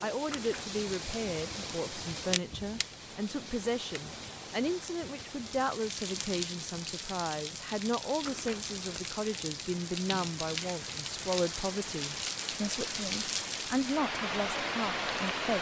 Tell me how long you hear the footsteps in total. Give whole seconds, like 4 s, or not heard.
not heard.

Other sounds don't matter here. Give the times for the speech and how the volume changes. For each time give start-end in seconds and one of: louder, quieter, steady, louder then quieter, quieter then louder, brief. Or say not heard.
0.0-15.5 steady.